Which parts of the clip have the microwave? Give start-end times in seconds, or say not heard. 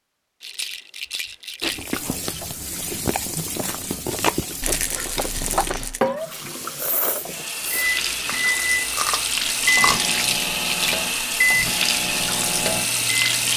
7.6-13.5.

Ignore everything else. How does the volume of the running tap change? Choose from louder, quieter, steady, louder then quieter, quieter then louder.
louder.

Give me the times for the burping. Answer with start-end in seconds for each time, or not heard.
not heard.